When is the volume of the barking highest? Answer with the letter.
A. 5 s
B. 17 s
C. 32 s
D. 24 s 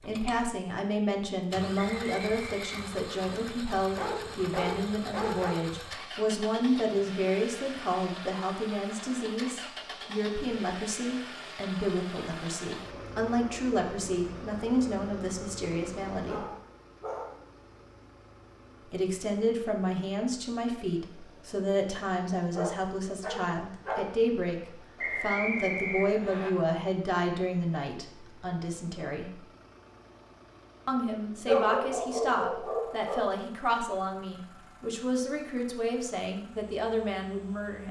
C.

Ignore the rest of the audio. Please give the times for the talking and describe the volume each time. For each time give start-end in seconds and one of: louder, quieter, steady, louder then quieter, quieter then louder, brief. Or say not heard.
0.0-16.4 steady
18.9-29.4 steady
30.9-37.8 steady.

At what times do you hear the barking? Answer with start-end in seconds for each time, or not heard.
4.0-5.5, 16.2-17.4, 22.6-24.1, 31.4-33.4.